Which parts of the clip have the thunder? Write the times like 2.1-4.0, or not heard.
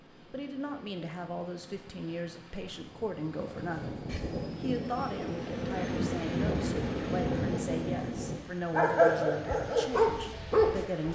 3.4-8.4.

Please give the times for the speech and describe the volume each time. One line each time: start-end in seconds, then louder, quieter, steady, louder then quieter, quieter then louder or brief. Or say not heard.
0.2-11.0 steady.